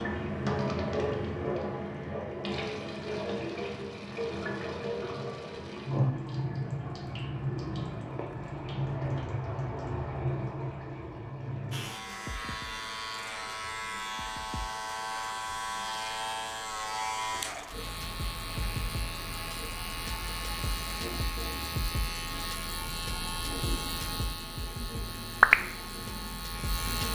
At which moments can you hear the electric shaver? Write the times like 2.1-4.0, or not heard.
11.7-27.0.